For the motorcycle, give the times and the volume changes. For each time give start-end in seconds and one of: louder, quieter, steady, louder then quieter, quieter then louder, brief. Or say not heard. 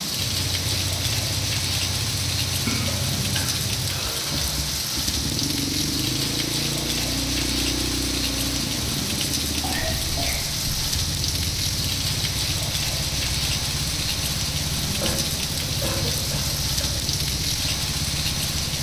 0.1-18.7 steady.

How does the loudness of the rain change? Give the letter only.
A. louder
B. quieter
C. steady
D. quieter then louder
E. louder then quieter
C.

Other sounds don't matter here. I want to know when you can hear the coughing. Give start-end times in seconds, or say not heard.
2.6-4.6, 9.6-10.4, 15.0-16.9.